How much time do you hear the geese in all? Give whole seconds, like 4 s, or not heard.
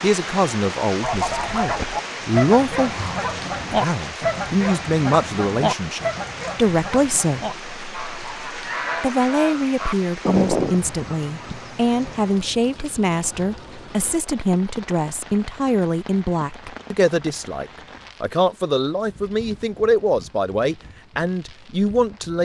11 s.